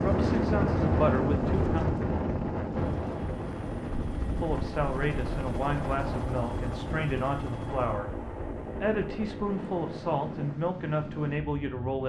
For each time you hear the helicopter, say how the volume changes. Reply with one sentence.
You can hear the helicopter from 2.8 to 10.6 s, at a steady volume.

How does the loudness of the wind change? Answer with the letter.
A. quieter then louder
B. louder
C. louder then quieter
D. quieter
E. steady
D.